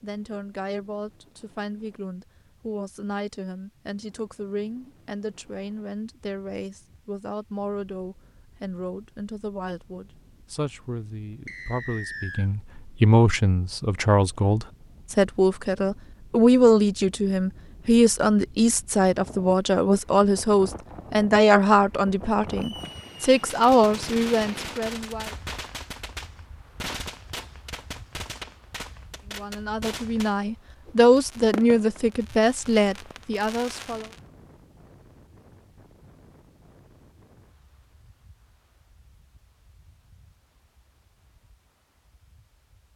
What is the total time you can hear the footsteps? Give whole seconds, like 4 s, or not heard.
not heard.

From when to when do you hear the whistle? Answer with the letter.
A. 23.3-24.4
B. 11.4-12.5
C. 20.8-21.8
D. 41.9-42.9
B.